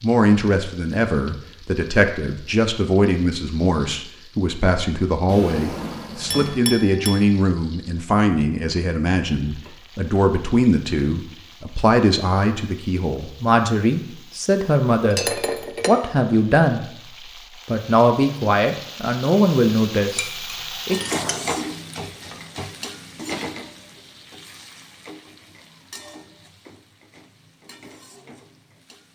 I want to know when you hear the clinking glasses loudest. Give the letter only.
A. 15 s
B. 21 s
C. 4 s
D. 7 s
A.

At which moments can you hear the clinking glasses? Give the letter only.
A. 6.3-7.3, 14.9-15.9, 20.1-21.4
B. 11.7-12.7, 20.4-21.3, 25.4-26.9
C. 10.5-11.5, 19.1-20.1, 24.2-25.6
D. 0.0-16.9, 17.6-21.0
A.